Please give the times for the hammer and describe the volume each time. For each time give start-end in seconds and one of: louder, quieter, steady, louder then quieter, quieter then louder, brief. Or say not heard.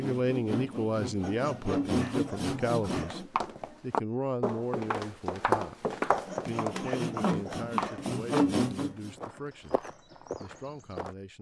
not heard.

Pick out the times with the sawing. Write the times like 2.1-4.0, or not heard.
0.0-3.3, 6.2-9.1.